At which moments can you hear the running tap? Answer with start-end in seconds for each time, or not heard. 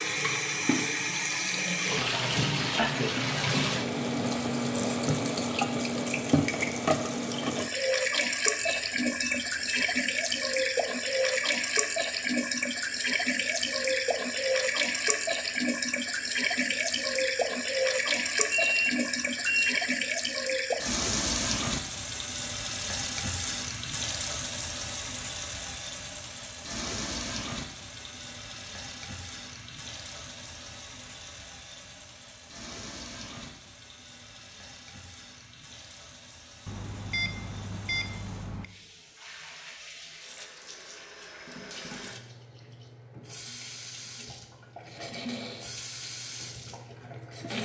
0.0-47.5.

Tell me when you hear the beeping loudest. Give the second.
19 s.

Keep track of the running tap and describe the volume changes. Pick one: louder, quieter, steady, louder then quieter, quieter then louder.
quieter.